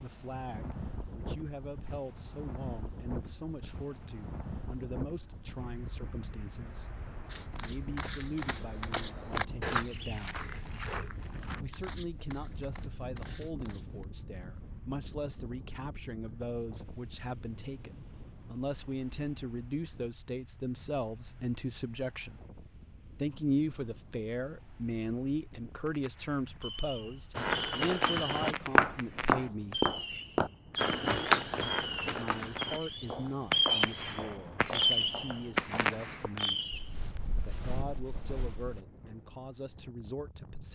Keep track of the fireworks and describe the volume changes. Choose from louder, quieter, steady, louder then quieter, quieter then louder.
louder.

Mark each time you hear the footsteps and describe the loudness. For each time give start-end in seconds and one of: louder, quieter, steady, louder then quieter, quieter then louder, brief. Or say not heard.
7.2-14.1 louder then quieter
27.4-38.8 quieter.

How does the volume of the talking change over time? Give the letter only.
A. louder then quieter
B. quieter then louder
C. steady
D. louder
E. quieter
A.